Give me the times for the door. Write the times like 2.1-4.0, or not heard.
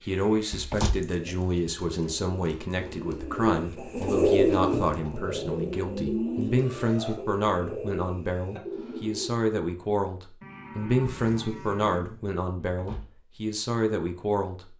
0.5-1.1, 12.7-13.1.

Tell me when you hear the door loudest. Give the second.
1 s.